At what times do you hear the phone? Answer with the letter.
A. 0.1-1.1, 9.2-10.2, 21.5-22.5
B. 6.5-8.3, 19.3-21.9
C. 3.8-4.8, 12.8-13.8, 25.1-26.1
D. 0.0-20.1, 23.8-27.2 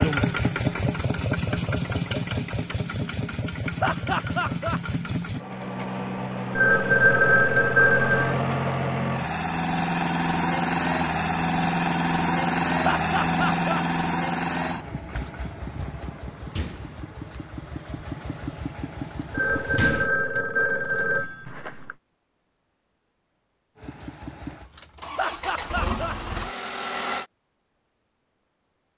B.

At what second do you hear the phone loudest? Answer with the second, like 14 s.
7 s.